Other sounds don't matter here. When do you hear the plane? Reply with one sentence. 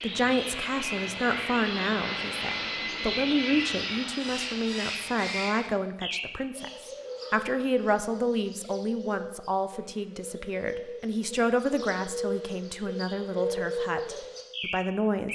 The plane can be heard from 0.0 to 5.3 s.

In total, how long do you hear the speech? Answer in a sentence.
The speech can be heard for 15 seconds in total.